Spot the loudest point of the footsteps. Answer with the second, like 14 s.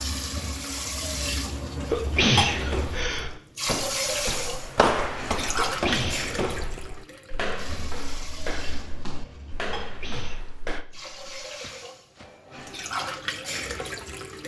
5 s.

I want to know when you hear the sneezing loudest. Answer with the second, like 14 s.
2 s.